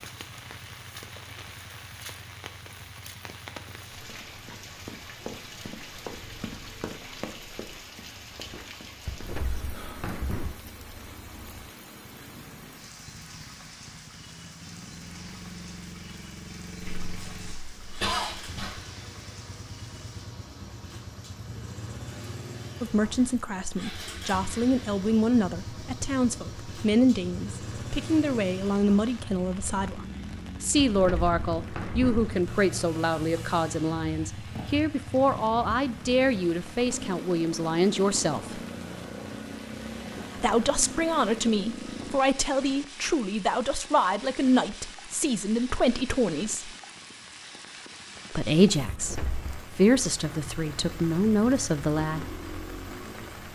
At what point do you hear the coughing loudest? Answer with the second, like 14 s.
18 s.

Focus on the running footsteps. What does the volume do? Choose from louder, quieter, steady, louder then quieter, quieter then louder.
quieter.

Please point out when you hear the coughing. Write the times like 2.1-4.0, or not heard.
16.8-18.8.